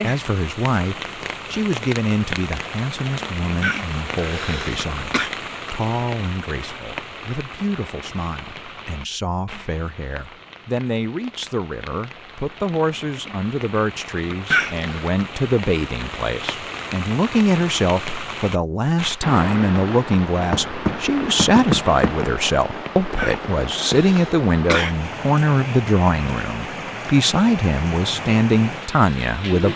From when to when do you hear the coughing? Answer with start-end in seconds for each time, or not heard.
3.6-5.3, 14.5-15.1, 23.1-24.9.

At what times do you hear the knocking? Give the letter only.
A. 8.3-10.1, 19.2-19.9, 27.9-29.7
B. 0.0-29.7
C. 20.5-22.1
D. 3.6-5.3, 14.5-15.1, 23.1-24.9
C.